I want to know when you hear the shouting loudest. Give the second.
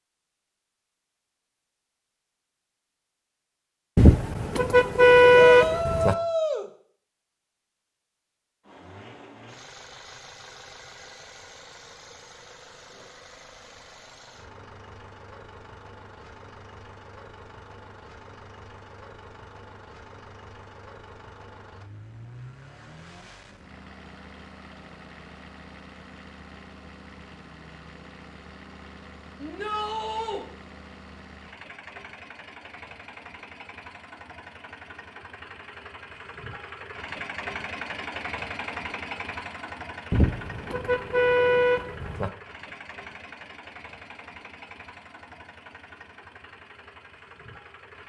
6 s.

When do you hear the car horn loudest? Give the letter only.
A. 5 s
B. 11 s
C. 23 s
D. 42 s
A.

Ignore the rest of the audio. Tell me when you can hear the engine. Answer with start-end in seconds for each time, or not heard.
8.6-48.0.